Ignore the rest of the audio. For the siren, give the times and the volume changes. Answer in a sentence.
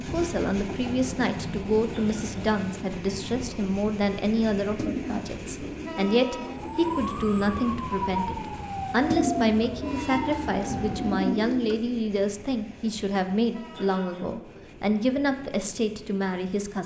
The siren can be heard from 6.4 to 11.3 s, at a steady volume.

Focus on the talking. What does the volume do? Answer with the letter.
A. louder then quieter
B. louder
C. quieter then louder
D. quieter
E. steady
E.